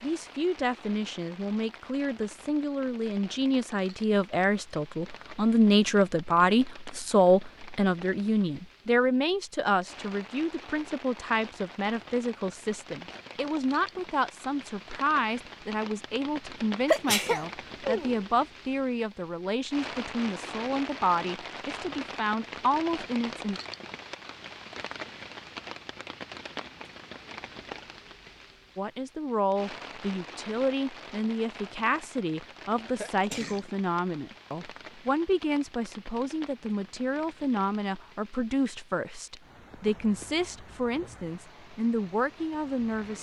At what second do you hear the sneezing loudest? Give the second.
17 s.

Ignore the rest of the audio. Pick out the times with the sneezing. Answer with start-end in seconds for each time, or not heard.
16.9-18.2, 33.0-33.7.